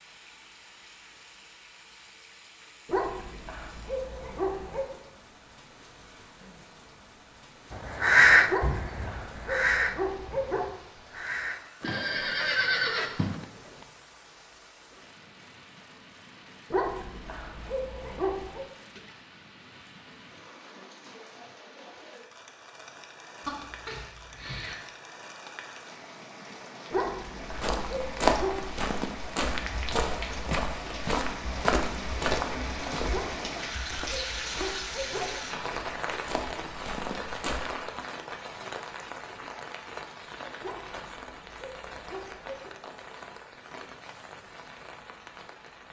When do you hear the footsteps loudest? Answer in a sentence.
The loudest moment of the footsteps is at 28 seconds.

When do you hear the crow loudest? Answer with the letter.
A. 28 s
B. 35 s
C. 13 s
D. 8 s
D.